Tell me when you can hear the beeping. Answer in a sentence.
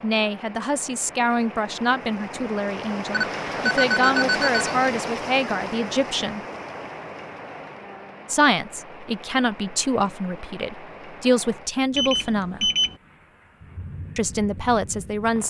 The beeping can be heard from 3.1 to 4.7 s and from 11.9 to 12.9 s.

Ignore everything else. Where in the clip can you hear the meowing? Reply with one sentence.
You can't hear the meowing here.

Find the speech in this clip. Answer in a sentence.
You can hear the speech from 0.0 to 6.4 s, from 8.2 to 12.7 s and from 14.2 to 15.4 s.